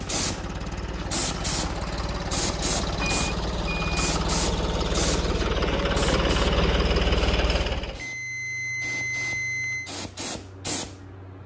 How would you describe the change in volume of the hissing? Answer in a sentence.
The volume of the hissing goes down, then up.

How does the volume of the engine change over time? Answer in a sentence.
The volume of the engine goes up.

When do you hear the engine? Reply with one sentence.
The engine can be heard from 0.0 to 8.1 s.